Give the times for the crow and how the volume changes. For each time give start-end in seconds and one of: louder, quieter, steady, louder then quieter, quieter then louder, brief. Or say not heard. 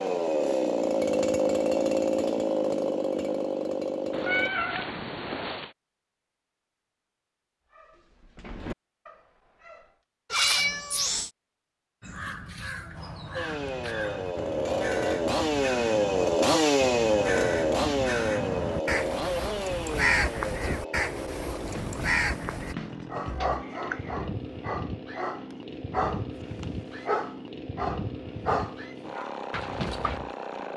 12.0-22.8 louder.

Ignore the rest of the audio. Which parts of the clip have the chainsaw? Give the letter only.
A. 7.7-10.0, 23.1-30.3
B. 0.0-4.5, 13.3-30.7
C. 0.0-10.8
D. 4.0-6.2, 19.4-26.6
B.